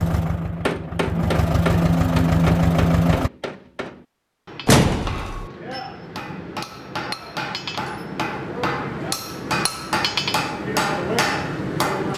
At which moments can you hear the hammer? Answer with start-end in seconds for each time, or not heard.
0.6-12.1.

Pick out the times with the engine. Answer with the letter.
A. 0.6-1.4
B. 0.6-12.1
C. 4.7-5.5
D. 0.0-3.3
D.